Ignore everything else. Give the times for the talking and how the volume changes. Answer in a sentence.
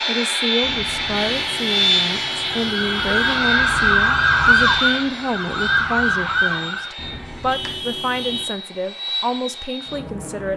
The talking can be heard from 0.1 to 10.5 s, at a steady volume.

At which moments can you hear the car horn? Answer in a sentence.
You can hear the car horn from 0.6 to 3.5 s and from 7.0 to 8.4 s.